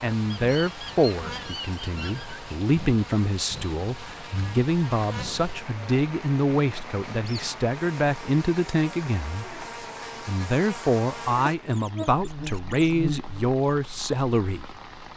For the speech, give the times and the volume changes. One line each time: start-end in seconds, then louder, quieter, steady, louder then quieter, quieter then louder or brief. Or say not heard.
0.0-14.8 steady.